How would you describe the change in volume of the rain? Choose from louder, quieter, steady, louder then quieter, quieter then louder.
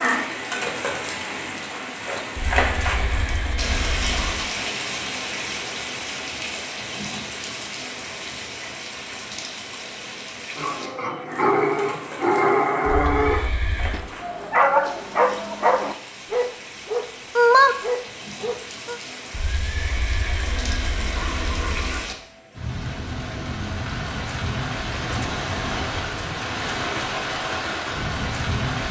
quieter then louder.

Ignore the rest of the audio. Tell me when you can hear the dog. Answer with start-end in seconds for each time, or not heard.
10.6-18.9.